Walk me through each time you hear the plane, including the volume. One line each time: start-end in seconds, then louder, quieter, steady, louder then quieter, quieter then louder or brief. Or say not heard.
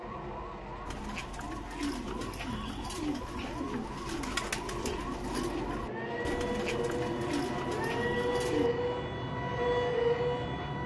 0.0-10.8 louder.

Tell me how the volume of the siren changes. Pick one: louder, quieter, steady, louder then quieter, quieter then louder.
louder.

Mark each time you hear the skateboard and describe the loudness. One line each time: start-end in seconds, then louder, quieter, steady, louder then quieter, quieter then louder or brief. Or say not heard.
not heard.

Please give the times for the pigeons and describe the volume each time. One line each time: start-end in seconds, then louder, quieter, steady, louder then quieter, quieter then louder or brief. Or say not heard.
0.8-8.7 steady.